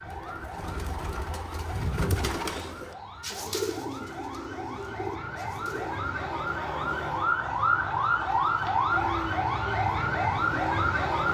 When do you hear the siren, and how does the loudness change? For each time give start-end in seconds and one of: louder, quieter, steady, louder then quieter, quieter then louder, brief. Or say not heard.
0.0-11.2 louder.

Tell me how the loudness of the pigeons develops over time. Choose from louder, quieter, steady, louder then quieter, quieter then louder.
louder then quieter.